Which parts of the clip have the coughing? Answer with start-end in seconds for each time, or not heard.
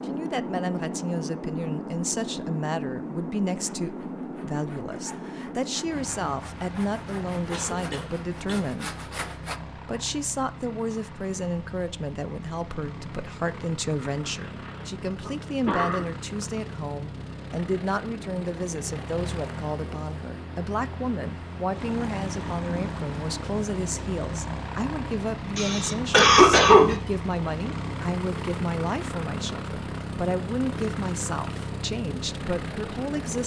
7.5-8.7, 14.2-16.1, 25.6-27.0.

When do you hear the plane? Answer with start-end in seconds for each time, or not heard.
0.0-33.4.